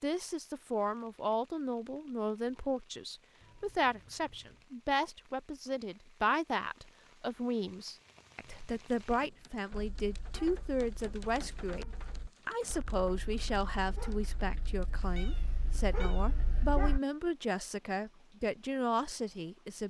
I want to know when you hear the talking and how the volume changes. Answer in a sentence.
You can hear the talking from 0.0 to 19.8 s, at a steady volume.